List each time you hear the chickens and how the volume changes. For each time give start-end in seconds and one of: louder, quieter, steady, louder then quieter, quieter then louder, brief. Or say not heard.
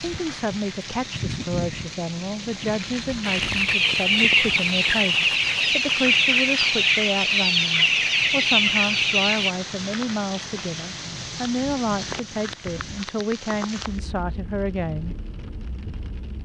3.2-9.6 steady.